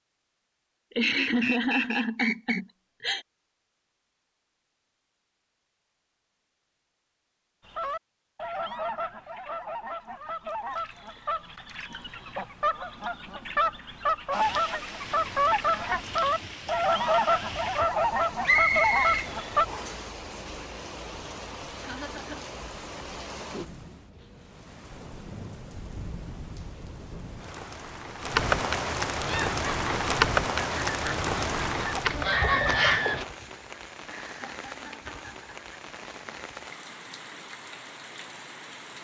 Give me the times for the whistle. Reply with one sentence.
You can hear the whistle from 1.1 to 2.6 s, from 18.4 to 20.1 s and from 32.3 to 33.4 s.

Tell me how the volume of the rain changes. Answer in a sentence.
The volume of the rain goes up, then down.